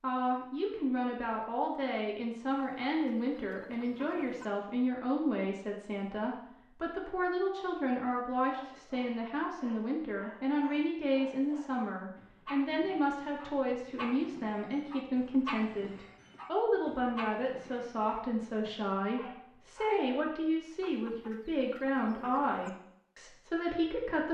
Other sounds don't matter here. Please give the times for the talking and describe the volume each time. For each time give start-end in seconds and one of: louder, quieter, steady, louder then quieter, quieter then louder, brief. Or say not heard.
0.0-24.2 steady.